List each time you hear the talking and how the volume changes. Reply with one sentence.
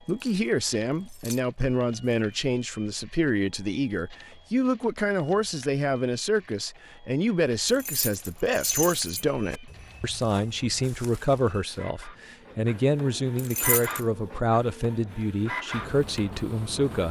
You can hear the talking from 0.1 to 17.0 s, at a steady volume.